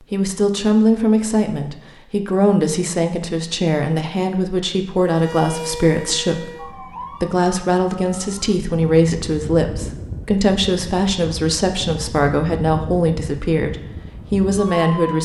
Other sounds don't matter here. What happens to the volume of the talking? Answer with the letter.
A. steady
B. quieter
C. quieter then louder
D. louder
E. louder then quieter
A.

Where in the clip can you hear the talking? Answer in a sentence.
The talking can be heard from 0.0 to 15.2 s.